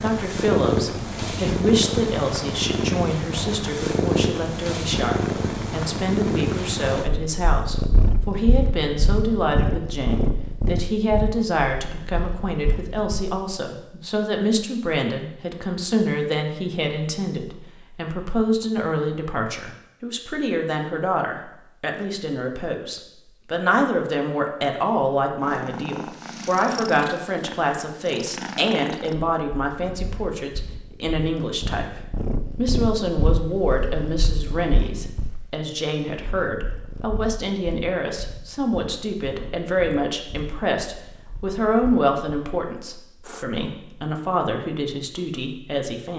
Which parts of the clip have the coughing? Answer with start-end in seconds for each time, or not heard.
not heard.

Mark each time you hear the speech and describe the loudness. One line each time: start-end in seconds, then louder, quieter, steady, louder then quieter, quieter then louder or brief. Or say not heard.
0.0-46.1 steady.